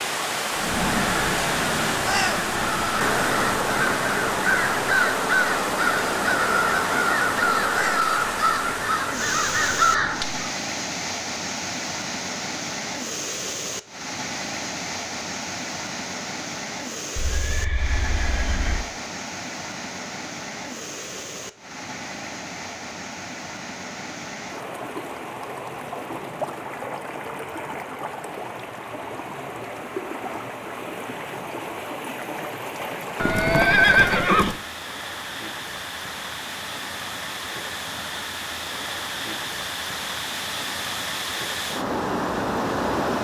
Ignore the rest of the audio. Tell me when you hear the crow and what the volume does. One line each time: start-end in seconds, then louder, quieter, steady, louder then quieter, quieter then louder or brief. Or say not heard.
0.5-10.4 steady.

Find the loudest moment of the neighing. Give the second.
34 s.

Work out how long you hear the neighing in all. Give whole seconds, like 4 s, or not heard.
3 s.